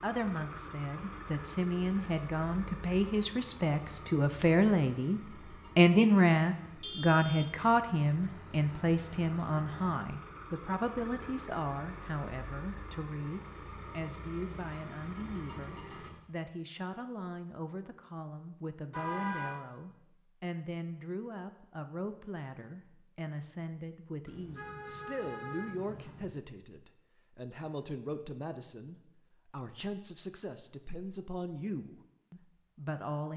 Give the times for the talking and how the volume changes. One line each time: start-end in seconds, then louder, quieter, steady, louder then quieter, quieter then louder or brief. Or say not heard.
0.0-33.3 quieter.